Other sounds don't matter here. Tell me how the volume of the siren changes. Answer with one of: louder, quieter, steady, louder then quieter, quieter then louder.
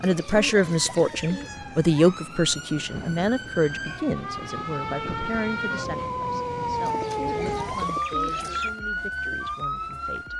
louder.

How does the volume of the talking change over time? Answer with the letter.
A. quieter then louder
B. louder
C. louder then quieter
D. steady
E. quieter
E.